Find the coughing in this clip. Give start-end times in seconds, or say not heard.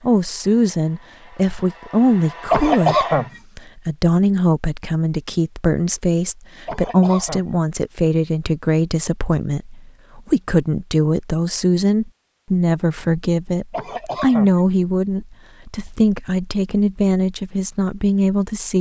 2.5-3.3, 6.7-7.5, 13.7-14.6.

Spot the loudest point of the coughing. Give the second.
3 s.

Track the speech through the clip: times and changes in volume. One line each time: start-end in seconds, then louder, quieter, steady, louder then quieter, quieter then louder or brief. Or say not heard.
0.0-18.7 steady.